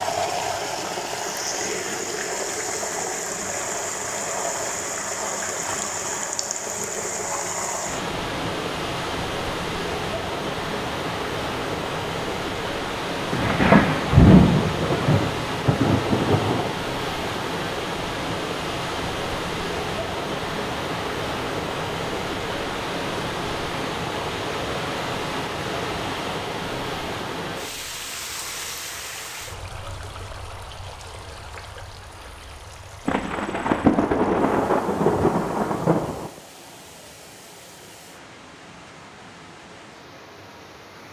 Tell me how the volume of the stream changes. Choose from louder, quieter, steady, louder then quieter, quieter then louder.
quieter.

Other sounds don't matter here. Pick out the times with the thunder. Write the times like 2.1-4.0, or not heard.
13.3-16.8, 33.0-36.3.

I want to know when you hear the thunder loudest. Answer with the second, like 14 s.
14 s.